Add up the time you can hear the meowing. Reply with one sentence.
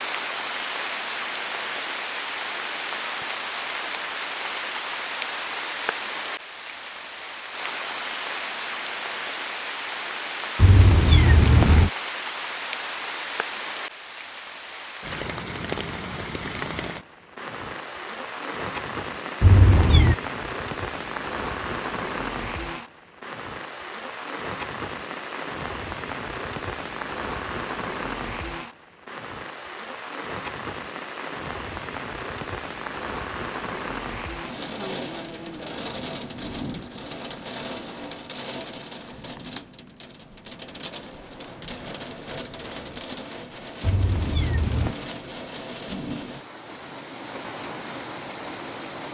You can hear the meowing for 3 seconds altogether.